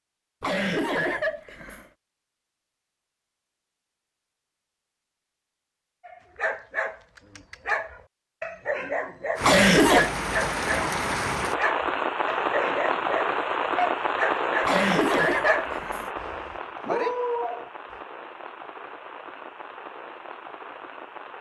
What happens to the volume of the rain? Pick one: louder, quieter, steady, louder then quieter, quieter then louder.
quieter.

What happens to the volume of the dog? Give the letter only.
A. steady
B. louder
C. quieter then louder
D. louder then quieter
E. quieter
A.